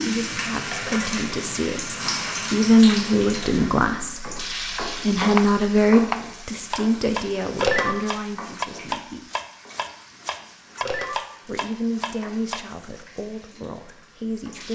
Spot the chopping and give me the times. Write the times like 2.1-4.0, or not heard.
5.3-13.1.